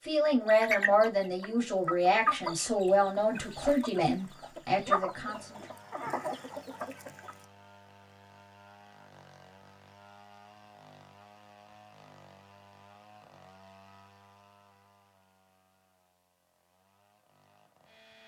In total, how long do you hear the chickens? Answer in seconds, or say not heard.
7 s.